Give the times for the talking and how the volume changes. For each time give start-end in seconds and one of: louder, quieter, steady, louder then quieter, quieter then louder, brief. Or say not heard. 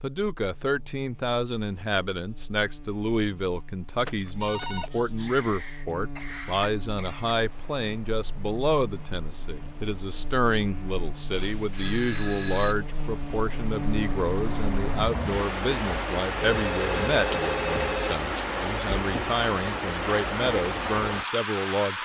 0.0-22.0 steady.